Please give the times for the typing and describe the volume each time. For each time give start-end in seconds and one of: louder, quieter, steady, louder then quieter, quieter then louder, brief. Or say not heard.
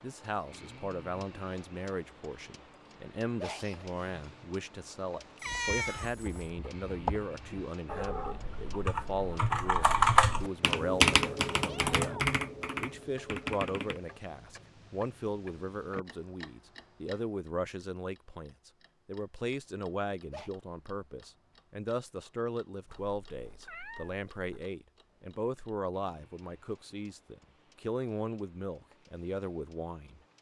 5.5-14.0 louder then quieter.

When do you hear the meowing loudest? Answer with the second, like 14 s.
6 s.